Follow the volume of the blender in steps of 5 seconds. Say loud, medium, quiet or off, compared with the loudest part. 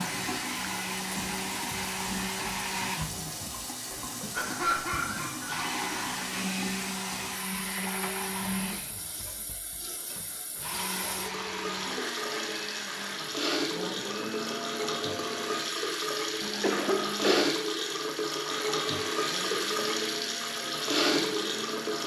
loud, loud, loud, medium, medium.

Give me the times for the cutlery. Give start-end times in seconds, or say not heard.
not heard.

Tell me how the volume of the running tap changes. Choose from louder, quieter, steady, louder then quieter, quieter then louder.
louder.